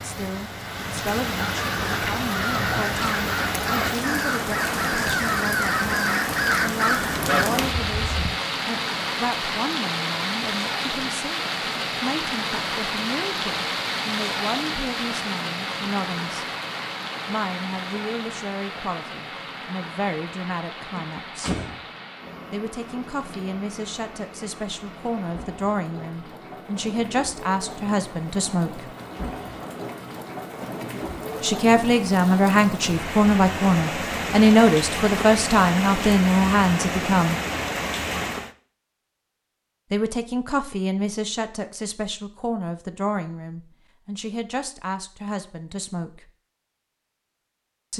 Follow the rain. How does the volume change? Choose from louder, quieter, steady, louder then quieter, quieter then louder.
quieter then louder.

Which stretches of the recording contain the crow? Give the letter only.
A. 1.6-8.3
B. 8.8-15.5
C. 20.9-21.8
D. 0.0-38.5
A.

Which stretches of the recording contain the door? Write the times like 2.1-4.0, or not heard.
20.9-21.8.